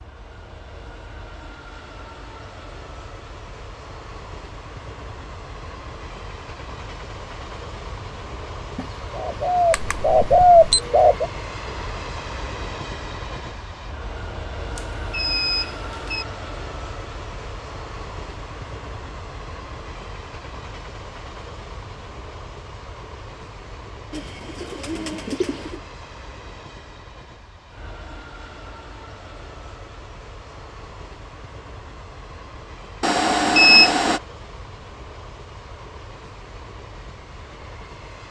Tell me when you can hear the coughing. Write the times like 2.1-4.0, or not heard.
not heard.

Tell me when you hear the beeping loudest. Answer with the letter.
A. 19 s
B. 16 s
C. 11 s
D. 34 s
D.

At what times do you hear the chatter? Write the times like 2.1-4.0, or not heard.
not heard.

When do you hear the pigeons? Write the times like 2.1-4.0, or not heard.
8.8-11.3, 24.1-25.8.